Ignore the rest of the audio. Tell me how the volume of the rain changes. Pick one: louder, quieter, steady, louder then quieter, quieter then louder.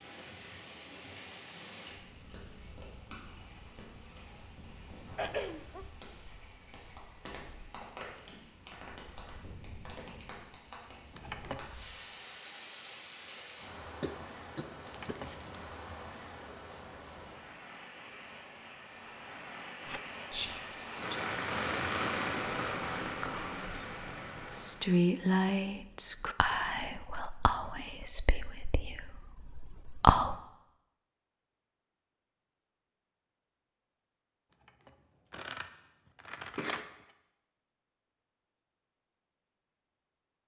louder.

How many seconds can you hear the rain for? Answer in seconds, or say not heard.
25 s.